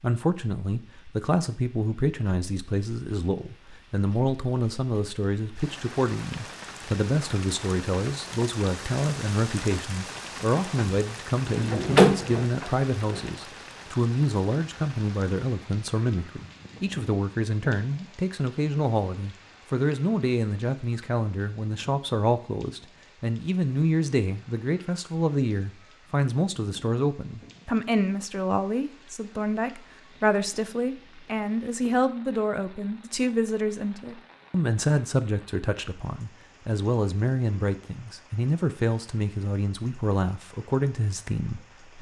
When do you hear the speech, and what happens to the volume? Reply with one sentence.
The speech can be heard from 0.0 to 41.9 s, at a steady volume.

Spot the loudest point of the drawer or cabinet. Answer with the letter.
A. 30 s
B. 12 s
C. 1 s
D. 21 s
B.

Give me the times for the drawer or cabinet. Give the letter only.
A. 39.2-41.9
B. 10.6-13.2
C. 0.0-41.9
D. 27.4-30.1
B.